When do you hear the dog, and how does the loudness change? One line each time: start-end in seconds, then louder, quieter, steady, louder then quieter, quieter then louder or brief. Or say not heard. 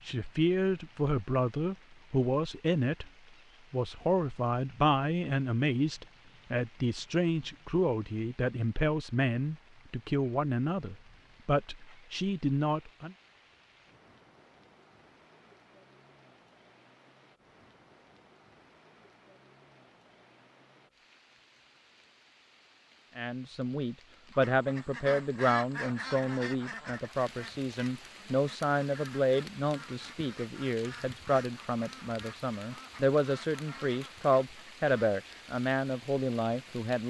not heard.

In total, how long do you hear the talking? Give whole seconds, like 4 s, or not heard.
26 s.